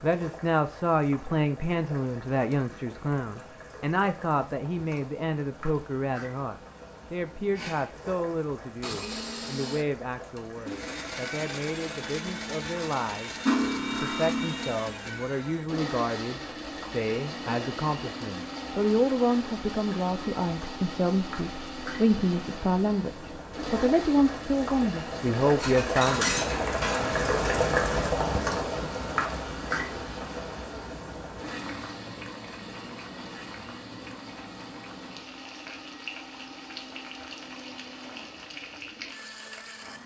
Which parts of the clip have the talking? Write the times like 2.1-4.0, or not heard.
0.0-26.4.